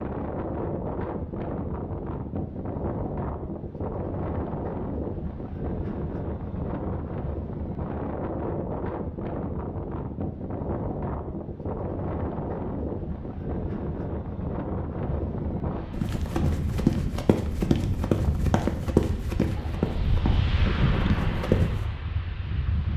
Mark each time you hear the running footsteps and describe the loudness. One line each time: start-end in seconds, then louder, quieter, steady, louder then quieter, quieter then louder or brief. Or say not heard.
15.9-21.8 quieter.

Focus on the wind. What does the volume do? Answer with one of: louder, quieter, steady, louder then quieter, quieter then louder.
steady.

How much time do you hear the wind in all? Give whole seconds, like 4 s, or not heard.
23 s.